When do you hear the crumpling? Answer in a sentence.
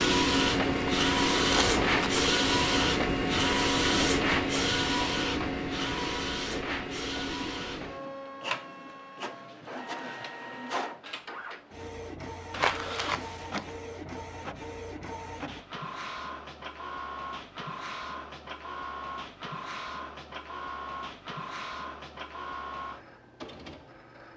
You can hear the crumpling from 0.8 to 2.2 s and from 12.5 to 13.7 s.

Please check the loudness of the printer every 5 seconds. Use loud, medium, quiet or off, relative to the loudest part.
loud, medium, quiet, quiet, quiet.